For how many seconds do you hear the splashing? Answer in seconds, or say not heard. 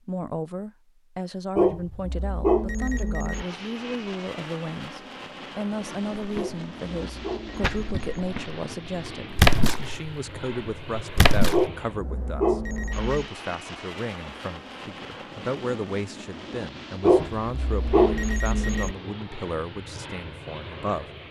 4 s.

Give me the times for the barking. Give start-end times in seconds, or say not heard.
1.6-3.5, 6.3-8.2, 11.5-13.2, 17.0-18.9.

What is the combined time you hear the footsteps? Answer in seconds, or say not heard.
not heard.